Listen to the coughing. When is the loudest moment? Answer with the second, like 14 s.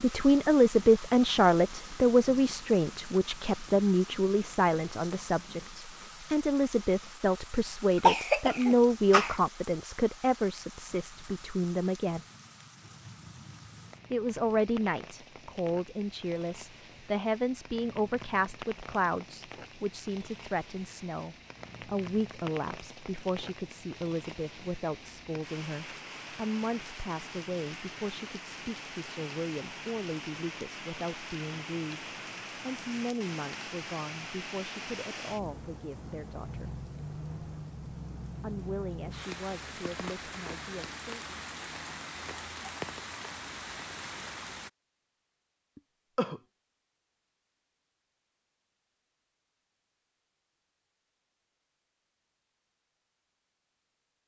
8 s.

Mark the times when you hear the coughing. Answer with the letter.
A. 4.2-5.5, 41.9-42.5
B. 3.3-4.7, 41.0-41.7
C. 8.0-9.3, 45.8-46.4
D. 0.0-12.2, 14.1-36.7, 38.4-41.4
C.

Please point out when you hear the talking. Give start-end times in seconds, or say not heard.
0.0-12.2, 14.1-36.7, 38.4-41.4.